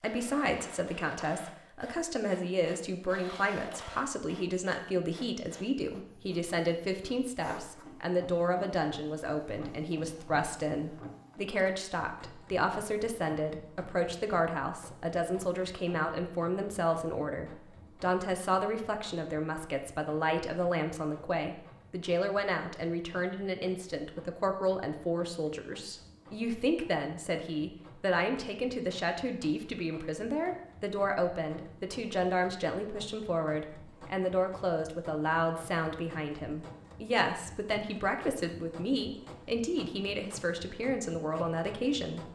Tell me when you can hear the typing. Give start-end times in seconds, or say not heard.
not heard.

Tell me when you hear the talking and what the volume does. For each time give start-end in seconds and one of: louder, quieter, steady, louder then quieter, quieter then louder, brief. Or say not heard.
0.0-42.3 steady.